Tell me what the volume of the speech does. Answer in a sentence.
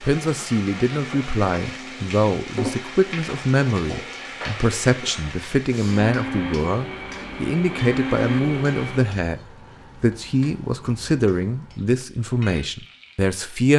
The volume of the speech stays about the same.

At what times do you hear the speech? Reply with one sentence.
You can hear the speech from 0.0 to 13.7 s.